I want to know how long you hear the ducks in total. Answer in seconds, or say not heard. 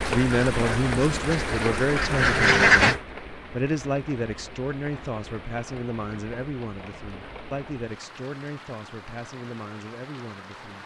3 s.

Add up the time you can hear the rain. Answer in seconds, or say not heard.
11 s.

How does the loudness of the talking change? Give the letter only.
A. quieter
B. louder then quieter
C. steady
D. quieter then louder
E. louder
A.